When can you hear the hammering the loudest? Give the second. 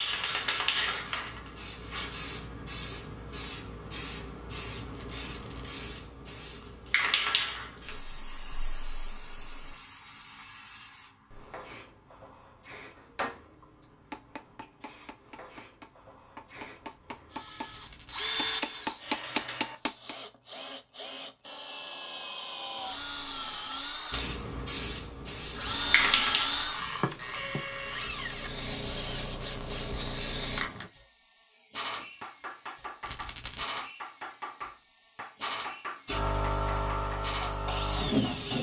19 s.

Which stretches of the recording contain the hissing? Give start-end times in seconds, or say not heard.
0.0-19.6, 24.1-30.9, 36.0-38.5.